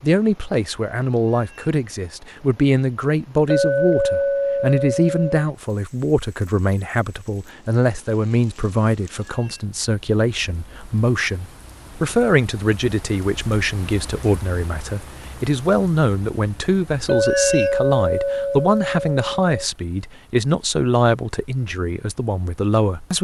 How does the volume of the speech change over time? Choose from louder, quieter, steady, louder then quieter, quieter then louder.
steady.